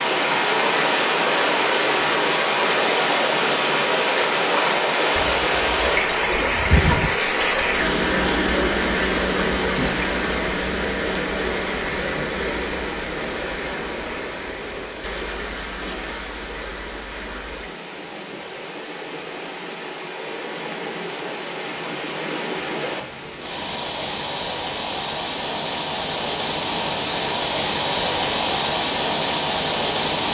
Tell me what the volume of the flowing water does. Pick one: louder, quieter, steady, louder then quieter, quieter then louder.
quieter then louder.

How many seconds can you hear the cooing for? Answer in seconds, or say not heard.
2 s.